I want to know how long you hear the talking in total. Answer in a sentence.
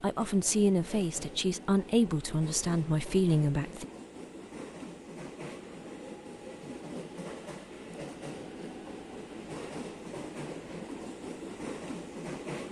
You can hear the talking for 4 seconds altogether.